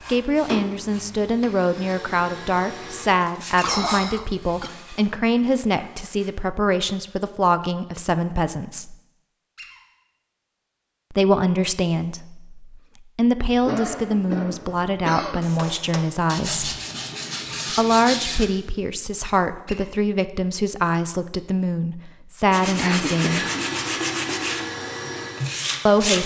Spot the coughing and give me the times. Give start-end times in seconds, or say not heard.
3.6-4.7, 13.6-15.5, 22.8-23.6.